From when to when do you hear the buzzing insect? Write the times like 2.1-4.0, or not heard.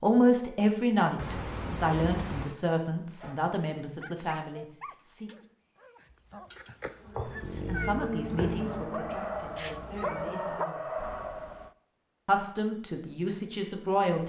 6.9-10.5.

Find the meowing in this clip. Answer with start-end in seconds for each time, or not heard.
1.1-2.6, 6.5-8.0, 9.6-10.2.